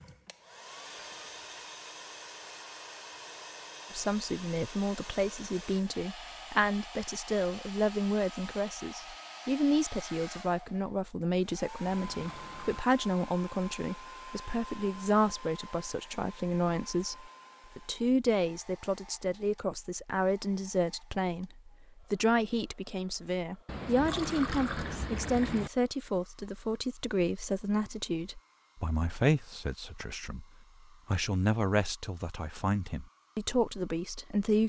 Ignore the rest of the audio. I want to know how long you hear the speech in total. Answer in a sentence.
You can hear the speech for 30 seconds altogether.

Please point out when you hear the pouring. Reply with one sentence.
The pouring can be heard from 0.9 to 1.4 s, from 11.8 to 12.8 s and from 23.6 to 25.7 s.